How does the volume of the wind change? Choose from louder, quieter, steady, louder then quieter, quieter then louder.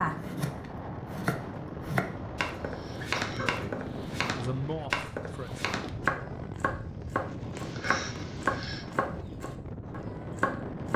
steady.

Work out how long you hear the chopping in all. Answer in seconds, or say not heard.
11 s.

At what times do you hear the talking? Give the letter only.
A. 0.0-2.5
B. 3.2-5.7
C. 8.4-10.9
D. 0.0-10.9
B.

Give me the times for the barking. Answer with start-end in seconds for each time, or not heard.
not heard.